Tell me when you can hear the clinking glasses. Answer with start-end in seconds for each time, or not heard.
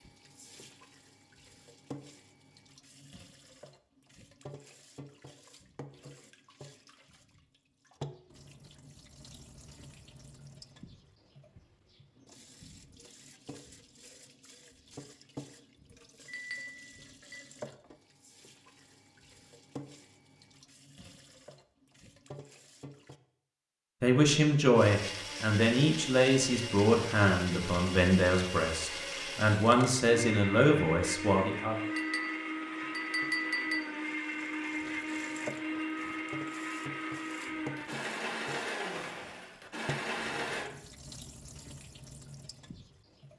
16.2-17.4, 31.9-33.8.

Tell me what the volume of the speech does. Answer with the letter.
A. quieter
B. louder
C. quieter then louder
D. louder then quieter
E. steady
E.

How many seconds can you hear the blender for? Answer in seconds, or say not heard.
16 s.